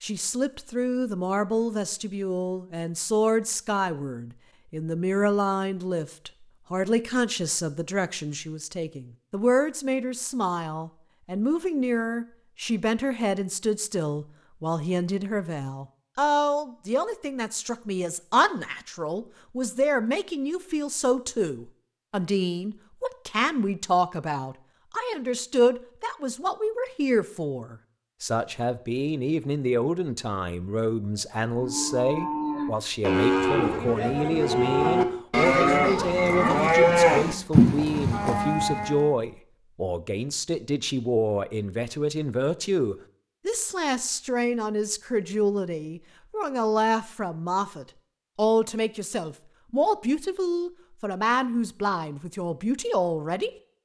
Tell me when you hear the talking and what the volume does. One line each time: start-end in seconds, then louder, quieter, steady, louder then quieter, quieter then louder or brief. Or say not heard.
0.0-53.5 steady.